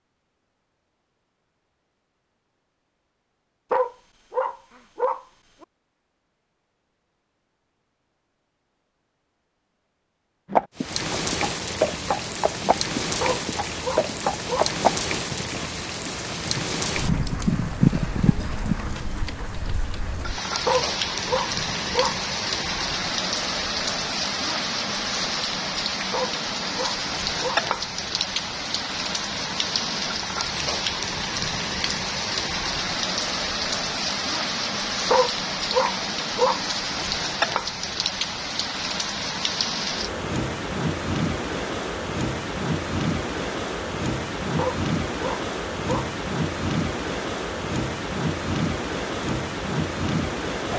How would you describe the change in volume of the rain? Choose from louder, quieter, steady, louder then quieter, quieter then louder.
steady.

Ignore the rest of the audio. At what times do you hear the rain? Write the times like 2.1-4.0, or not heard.
10.8-50.7.